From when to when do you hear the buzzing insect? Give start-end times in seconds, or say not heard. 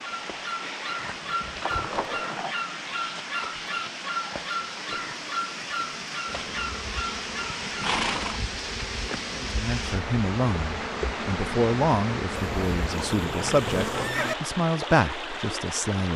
6.2-14.1.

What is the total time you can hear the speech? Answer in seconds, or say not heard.
7 s.